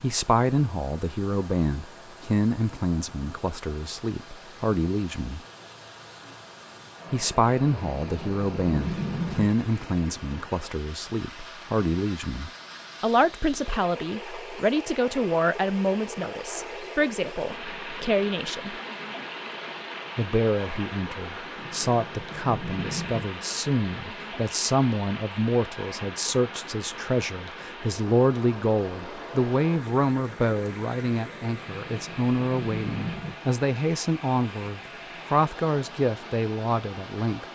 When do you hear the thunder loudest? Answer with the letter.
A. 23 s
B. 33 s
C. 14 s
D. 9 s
D.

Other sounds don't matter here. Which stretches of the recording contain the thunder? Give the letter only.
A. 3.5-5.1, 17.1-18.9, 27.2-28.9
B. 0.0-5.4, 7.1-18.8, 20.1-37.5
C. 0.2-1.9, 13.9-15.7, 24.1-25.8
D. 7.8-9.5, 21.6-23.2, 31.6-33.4
D.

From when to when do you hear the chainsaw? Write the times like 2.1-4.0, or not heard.
not heard.